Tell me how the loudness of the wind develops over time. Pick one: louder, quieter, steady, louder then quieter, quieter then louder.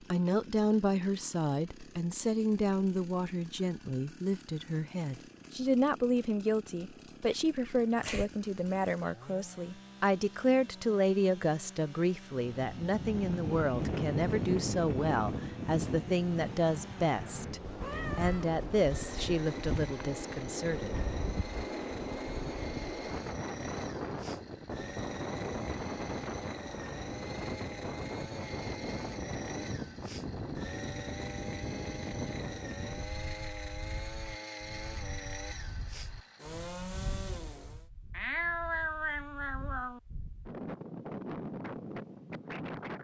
quieter.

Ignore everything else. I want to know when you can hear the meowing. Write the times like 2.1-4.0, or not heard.
7.3-8.2, 17.8-18.6, 38.1-40.0.